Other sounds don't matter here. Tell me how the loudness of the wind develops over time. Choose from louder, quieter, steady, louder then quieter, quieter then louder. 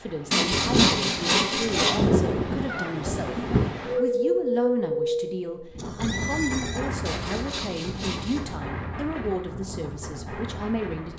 quieter.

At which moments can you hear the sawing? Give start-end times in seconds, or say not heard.
0.3-2.0, 7.0-8.6.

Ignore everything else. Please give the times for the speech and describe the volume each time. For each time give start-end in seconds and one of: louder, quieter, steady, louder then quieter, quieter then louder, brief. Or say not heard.
0.0-11.1 steady.